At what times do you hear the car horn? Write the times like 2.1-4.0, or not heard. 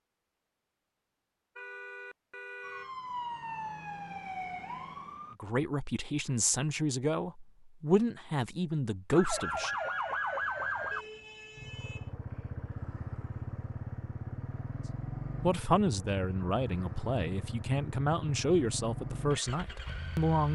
1.6-3.0, 10.9-12.2.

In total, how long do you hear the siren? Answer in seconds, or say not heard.
5 s.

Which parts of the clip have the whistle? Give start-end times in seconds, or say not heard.
not heard.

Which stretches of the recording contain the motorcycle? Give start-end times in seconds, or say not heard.
11.6-20.4.